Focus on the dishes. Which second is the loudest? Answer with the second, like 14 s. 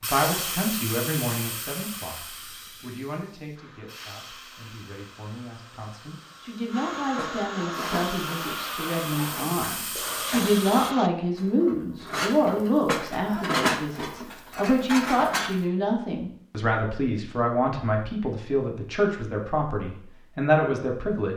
14 s.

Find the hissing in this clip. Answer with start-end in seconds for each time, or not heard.
0.0-10.9.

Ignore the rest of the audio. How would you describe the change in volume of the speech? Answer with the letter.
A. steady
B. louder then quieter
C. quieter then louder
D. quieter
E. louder
E.